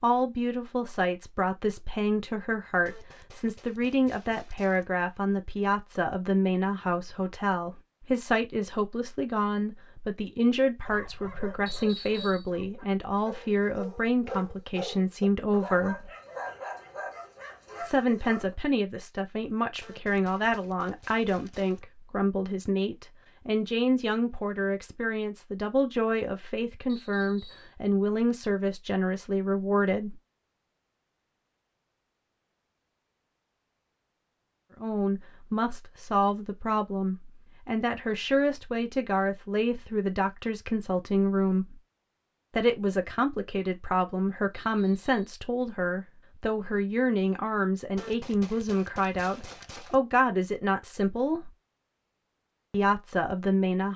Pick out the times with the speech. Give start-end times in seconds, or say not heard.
0.0-16.1, 17.8-30.1, 34.8-41.8, 42.5-51.5, 52.7-53.9.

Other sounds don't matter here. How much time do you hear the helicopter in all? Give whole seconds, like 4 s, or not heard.
not heard.